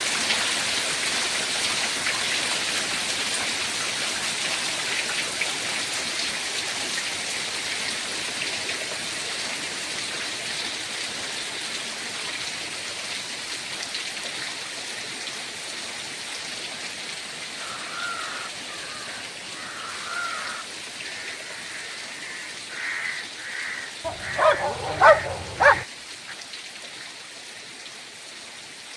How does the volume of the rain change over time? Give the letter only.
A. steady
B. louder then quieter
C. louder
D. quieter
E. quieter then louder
D.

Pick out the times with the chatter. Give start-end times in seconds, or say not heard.
not heard.